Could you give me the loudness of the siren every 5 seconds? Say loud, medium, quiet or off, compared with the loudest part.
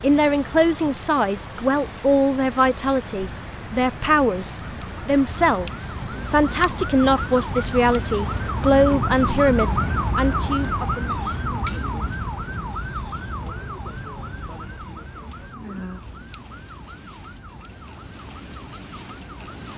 quiet, loud, loud, quiet.